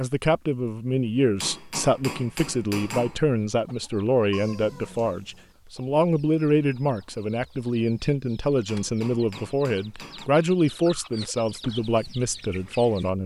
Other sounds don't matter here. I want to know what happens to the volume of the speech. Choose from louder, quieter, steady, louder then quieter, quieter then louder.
steady.